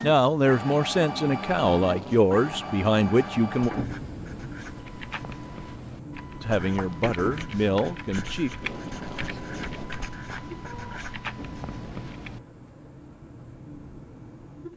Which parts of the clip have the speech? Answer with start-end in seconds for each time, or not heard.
0.0-3.7, 6.4-8.5.